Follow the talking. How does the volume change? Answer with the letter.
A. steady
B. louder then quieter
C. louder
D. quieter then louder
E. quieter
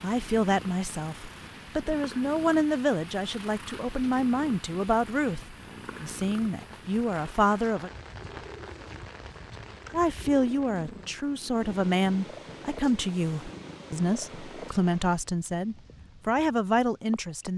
A.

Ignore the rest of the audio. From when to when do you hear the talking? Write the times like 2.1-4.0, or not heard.
0.0-7.9, 9.9-17.5.